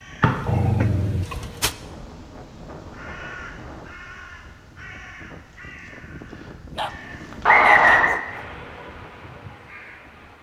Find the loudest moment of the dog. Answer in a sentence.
The volume of the dog peaks at 1 second.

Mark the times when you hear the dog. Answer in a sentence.
The dog can be heard from 0.2 to 1.8 s and from 6.8 to 8.4 s.